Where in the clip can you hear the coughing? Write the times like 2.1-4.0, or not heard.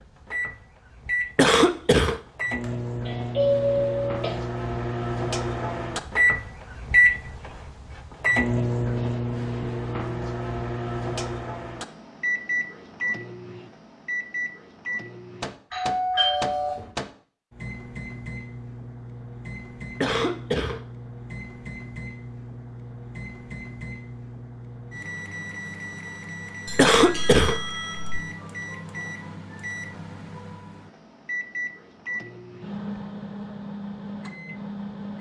1.4-2.1, 20.0-20.8, 26.8-27.6.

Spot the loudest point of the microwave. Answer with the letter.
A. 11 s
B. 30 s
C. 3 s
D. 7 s
D.